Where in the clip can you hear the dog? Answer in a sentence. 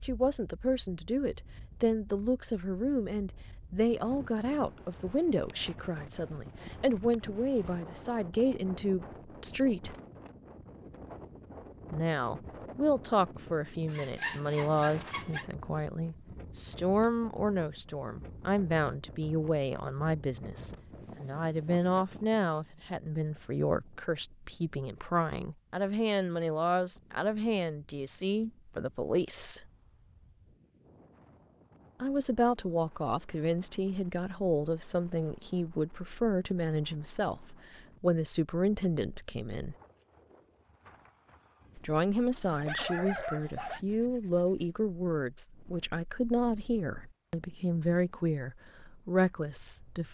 The dog can be heard from 41.6 to 43.8 s.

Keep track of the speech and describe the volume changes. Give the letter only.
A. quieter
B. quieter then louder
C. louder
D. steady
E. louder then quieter
D.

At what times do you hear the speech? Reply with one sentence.
The speech can be heard from 0.0 to 9.9 s, from 11.9 to 29.6 s, from 32.0 to 39.8 s and from 41.8 to 50.1 s.